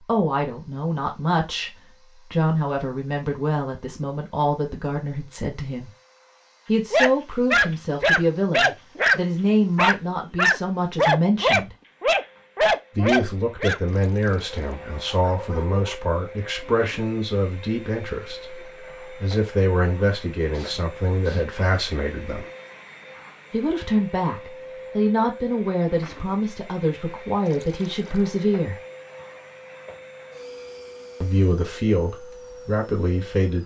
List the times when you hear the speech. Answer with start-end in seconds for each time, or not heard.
0.1-1.7, 2.3-5.9, 6.7-11.8, 12.9-22.5, 23.5-28.8, 31.2-33.6.